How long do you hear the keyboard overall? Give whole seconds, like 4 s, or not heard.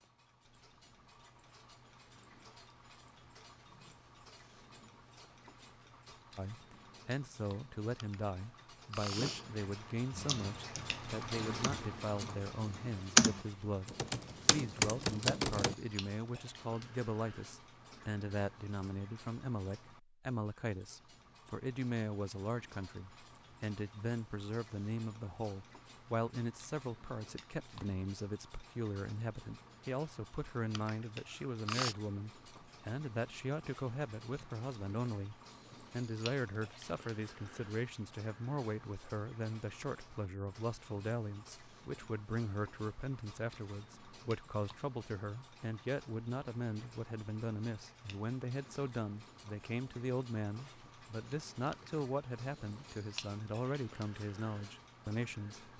6 s.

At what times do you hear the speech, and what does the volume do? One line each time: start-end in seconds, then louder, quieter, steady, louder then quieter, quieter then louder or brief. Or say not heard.
6.3-55.7 steady.